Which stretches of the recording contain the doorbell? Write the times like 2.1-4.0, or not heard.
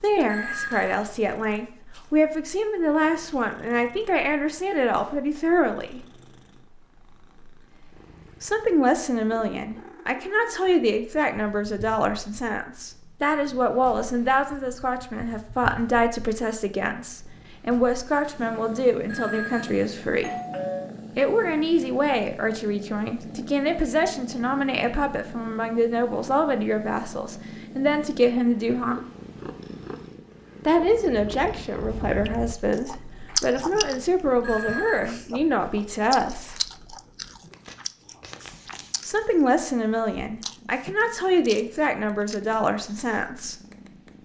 0.2-0.9, 19.1-20.9, 34.4-35.2.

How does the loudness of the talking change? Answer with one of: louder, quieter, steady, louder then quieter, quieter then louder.
steady.